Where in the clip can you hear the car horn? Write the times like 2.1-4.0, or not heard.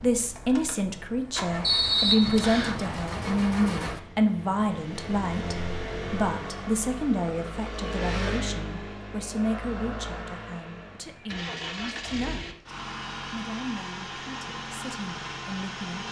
not heard.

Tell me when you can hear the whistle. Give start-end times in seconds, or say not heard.
1.6-2.8.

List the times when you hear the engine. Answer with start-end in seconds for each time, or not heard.
0.0-16.0.